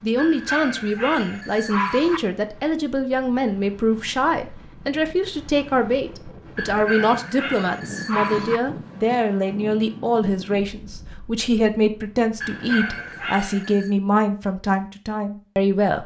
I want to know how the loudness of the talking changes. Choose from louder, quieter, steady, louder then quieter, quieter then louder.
steady.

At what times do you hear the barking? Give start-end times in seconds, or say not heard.
0.1-2.2, 6.5-8.6, 12.4-13.9.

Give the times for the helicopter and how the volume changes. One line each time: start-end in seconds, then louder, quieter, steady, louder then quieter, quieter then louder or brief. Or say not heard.
not heard.